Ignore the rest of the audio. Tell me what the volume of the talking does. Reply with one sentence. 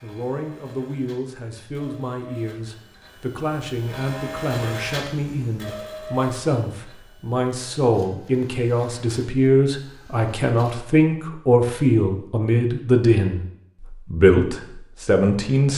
The volume of the talking goes up.